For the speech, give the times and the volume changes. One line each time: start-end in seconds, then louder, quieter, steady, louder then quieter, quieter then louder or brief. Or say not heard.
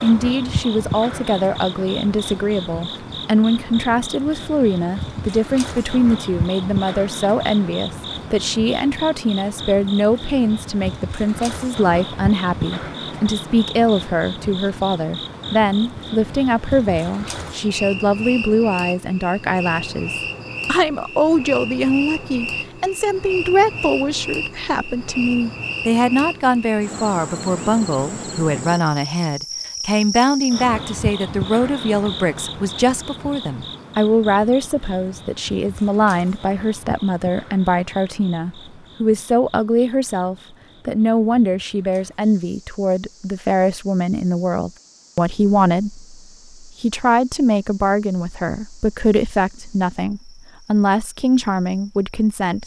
0.0-52.6 steady.